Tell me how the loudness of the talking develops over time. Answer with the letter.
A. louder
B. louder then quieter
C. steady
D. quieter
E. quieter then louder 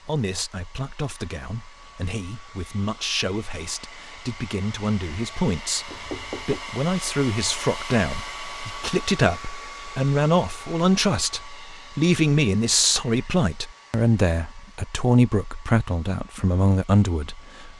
A.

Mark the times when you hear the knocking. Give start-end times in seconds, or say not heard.
5.8-6.7.